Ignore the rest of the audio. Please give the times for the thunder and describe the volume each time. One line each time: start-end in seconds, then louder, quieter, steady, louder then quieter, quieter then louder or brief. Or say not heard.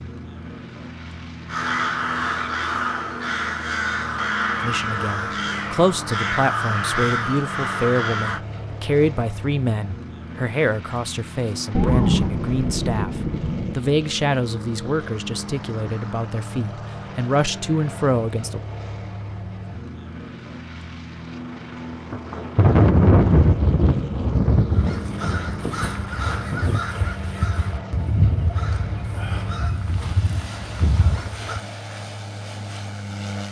11.7-13.8 brief
22.1-26.8 quieter.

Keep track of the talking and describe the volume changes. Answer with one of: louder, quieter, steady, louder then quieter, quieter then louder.
steady.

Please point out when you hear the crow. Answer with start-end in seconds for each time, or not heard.
1.4-8.4, 24.7-31.6.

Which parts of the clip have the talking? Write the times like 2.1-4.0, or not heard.
4.6-13.1, 13.8-18.6.